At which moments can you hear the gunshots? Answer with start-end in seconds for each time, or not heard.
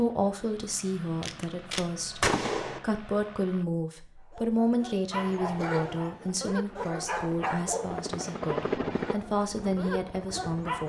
1.2-2.8.